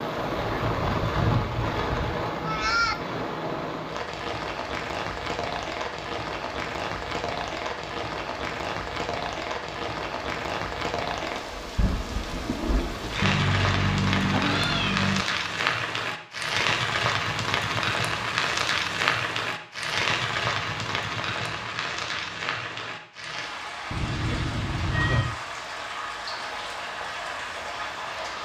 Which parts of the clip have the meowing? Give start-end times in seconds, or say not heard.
2.4-3.0, 13.2-15.2, 23.9-25.4.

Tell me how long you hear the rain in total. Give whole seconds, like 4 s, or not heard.
28 s.